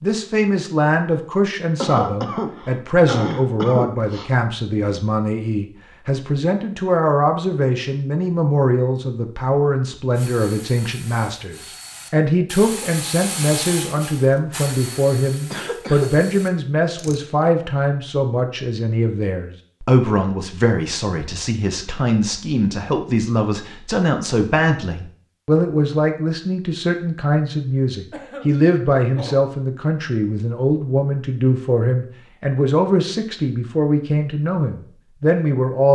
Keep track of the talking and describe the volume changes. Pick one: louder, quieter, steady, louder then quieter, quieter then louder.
steady.